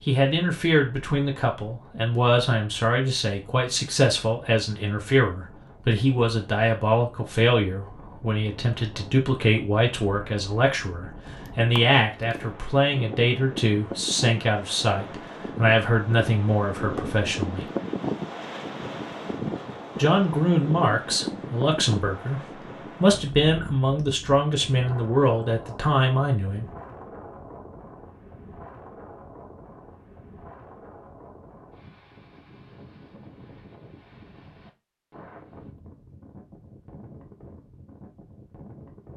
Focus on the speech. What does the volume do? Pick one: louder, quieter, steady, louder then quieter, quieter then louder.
steady.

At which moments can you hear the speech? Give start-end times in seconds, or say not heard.
0.0-17.6, 19.9-26.6.